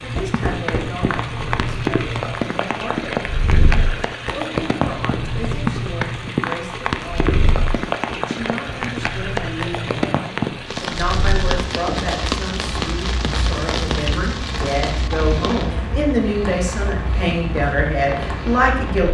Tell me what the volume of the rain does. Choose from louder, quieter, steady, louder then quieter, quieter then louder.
quieter.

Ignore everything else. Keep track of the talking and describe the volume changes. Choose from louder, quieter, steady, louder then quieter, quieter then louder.
louder.